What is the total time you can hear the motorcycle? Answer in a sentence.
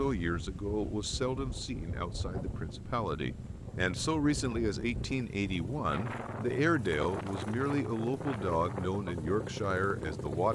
You can hear the motorcycle for 10 seconds altogether.